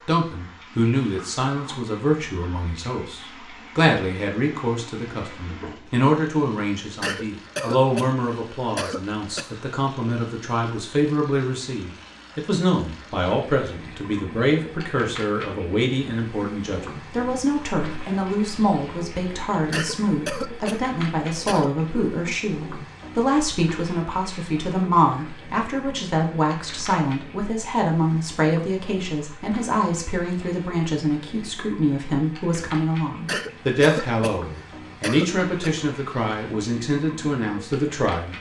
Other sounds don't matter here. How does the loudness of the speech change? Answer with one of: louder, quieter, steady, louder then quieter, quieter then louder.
steady.